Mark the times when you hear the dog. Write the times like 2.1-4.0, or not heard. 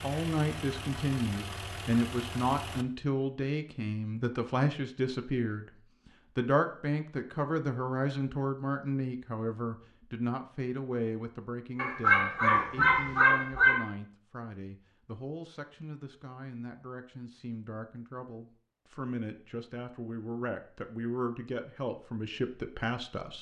11.8-13.8.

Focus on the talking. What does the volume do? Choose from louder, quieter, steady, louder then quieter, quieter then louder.
quieter then louder.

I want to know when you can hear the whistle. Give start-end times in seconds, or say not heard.
not heard.